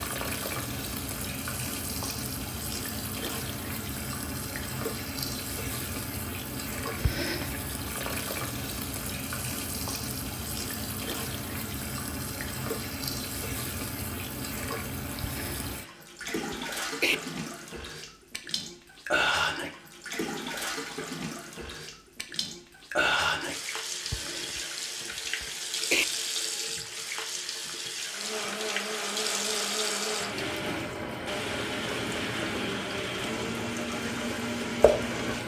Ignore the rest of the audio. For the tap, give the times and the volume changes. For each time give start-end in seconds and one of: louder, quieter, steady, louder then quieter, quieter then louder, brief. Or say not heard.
0.0-35.4 steady.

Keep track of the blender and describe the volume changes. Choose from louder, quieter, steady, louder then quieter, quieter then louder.
steady.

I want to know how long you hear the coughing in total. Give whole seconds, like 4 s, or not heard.
3 s.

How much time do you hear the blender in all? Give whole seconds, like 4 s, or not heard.
7 s.